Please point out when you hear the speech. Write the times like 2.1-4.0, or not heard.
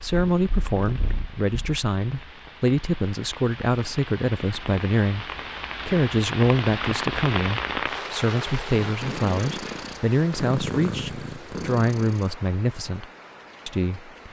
0.0-5.2, 5.8-13.1, 13.7-14.2.